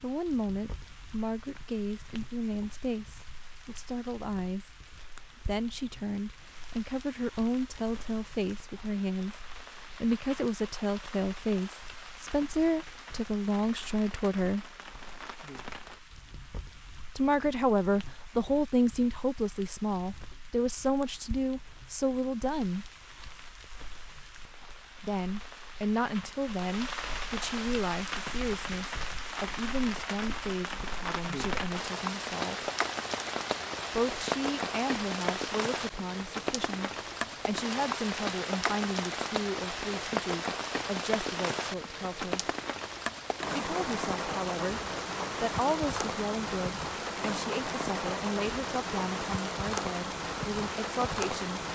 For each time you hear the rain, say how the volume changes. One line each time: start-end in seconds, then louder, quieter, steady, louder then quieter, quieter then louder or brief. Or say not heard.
0.0-51.7 louder.